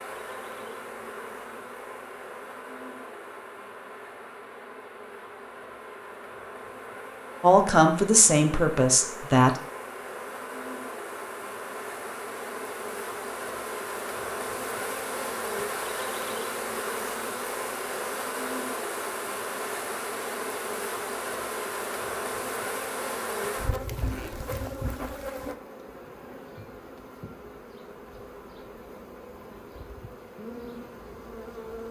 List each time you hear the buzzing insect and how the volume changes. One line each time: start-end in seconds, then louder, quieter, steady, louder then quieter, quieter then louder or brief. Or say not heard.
0.0-31.8 louder then quieter.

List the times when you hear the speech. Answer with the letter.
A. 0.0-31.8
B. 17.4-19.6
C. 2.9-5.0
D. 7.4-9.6
D.